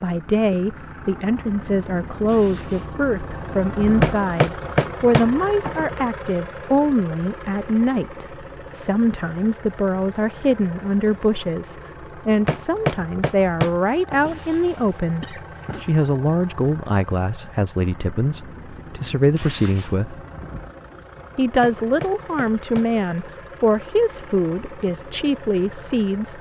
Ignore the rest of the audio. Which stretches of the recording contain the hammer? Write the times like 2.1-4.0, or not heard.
4.0-5.9, 12.4-14.3, 21.6-23.3.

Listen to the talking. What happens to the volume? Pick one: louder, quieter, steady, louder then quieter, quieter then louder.
steady.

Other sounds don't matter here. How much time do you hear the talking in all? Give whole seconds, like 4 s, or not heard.
25 s.